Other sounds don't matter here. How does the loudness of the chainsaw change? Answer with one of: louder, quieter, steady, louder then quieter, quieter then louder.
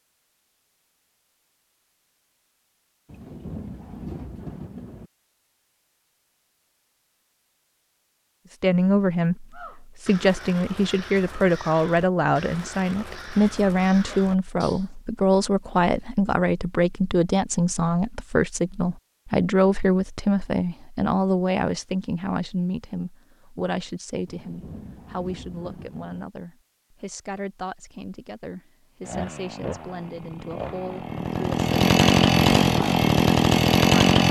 louder.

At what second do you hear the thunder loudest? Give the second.
4 s.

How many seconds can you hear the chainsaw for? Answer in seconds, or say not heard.
5 s.